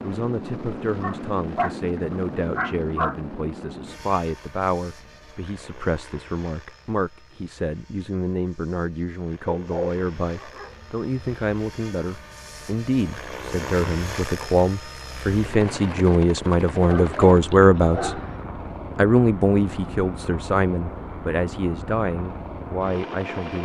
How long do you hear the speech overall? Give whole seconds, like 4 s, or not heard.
23 s.